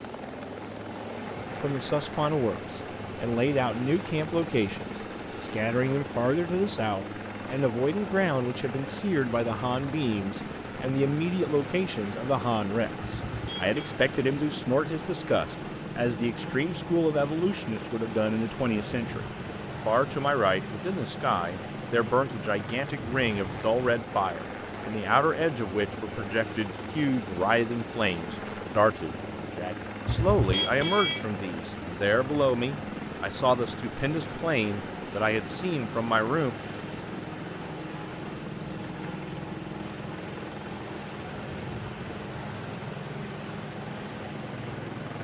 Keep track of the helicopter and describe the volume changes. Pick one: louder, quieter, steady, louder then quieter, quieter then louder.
steady.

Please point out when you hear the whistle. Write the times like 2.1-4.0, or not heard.
not heard.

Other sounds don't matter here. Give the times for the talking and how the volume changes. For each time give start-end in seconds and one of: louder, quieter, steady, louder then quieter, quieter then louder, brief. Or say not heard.
1.6-36.5 steady.